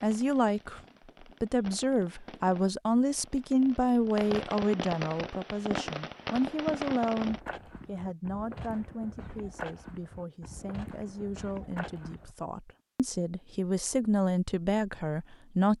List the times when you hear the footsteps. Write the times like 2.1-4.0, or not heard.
7.2-12.3.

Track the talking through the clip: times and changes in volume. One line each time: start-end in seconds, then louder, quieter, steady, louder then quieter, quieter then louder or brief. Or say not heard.
0.0-0.8 brief
1.4-15.7 quieter then louder.